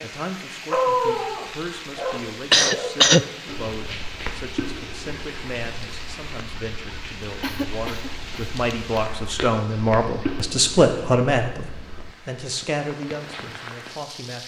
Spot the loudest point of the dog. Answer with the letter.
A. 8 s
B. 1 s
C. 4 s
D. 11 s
B.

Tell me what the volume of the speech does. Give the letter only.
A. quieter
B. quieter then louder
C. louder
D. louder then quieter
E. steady
D.